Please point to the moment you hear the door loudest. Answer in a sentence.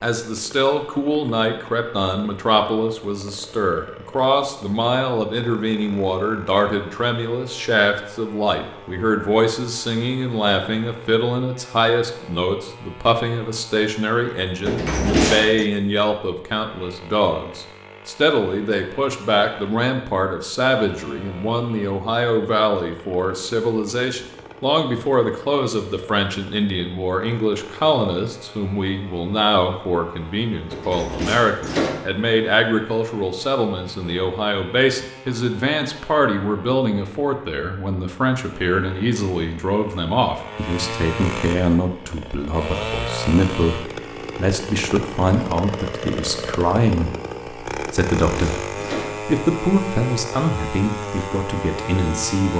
The volume of the door peaks at 15 seconds.